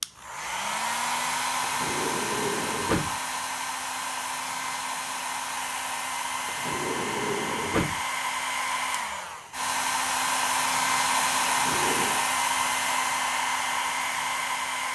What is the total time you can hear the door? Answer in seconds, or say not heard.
4 s.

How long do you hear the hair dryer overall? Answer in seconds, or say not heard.
15 s.